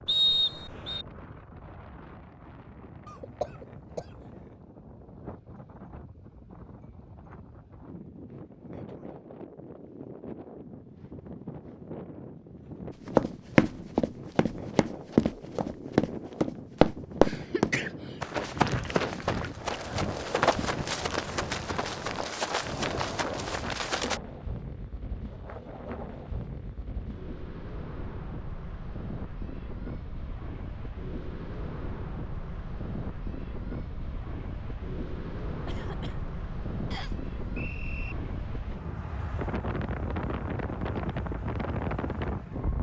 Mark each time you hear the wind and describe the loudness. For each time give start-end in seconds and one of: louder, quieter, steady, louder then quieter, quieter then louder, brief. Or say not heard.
0.0-42.7 louder.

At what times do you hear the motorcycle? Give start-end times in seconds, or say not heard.
not heard.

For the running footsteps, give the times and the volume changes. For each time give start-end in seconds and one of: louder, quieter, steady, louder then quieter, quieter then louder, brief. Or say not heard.
13.1-24.2 quieter.